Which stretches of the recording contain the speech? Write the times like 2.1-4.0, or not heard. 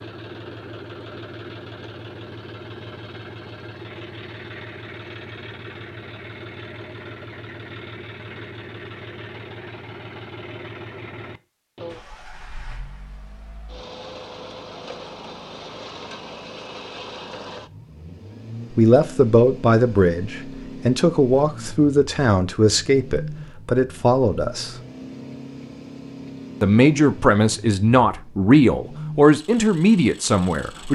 18.8-24.8, 26.6-30.9.